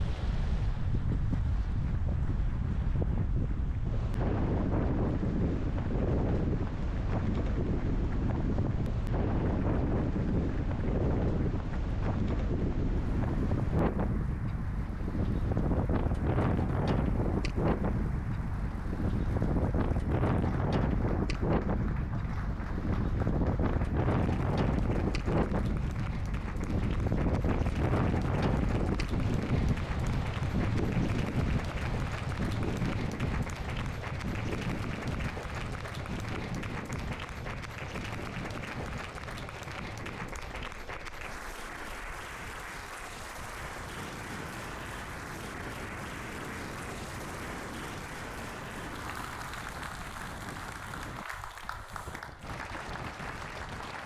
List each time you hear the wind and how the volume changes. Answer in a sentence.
The wind can be heard from 0.0 to 54.0 s, getting quieter.